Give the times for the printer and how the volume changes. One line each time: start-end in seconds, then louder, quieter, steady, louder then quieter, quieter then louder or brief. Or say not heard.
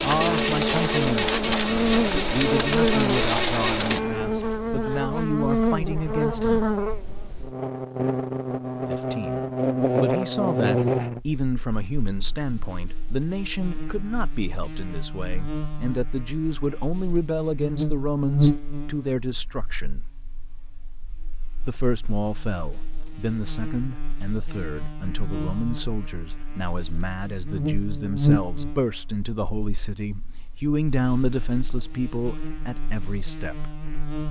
0.0-4.5 steady.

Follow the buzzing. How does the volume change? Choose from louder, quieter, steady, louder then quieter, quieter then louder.
quieter then louder.